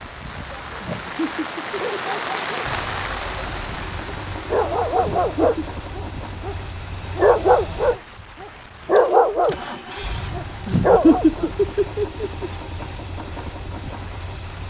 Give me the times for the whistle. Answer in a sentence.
You can't hear the whistle here.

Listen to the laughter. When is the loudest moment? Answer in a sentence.
The volume of the laughter peaks at 11 seconds.